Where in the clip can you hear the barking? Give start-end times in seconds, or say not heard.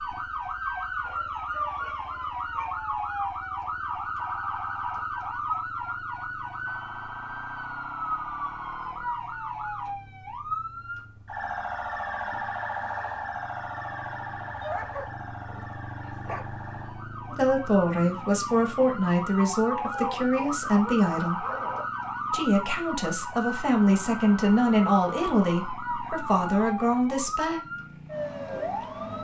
1.1-2.8, 14.6-16.4, 19.9-21.9.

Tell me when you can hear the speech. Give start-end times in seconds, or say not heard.
17.3-21.4, 22.3-27.6.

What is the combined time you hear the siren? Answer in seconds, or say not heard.
29 s.